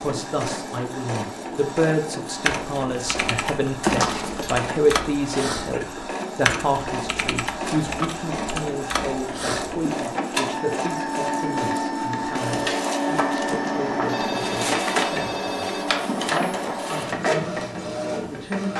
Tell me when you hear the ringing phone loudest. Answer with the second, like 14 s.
4 s.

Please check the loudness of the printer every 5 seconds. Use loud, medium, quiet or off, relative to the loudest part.
medium, medium, loud, loud.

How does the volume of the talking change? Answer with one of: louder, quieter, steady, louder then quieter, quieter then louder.
quieter.